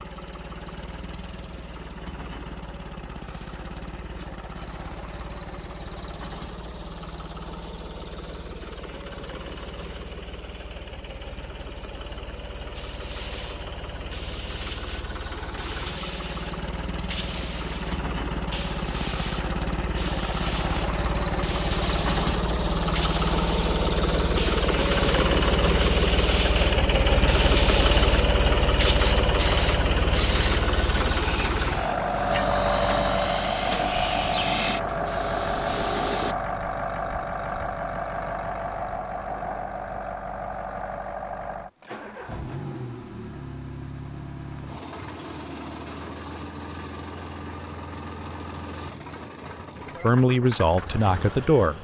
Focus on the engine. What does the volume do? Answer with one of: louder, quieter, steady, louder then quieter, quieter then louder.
louder then quieter.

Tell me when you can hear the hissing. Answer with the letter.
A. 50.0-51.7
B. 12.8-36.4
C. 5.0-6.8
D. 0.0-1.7
B.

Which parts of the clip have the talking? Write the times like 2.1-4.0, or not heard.
50.0-51.7.